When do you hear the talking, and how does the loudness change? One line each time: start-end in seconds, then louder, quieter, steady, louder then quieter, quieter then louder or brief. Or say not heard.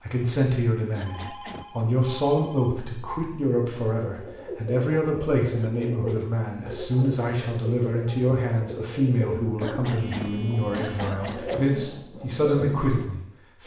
0.0-13.6 steady.